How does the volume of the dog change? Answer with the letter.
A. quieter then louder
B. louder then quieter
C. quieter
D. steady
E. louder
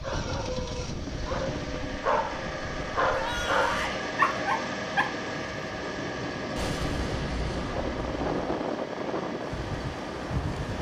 E.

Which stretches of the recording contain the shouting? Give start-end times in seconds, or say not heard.
3.1-4.0.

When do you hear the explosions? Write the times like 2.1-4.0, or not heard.
6.5-8.3.